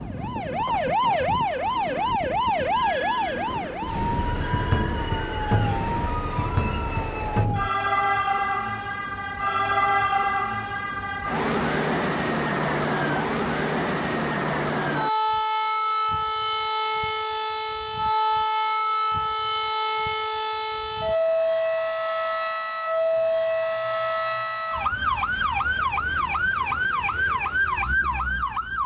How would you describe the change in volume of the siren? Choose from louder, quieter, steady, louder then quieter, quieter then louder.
steady.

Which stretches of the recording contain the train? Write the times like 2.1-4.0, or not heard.
0.0-7.5.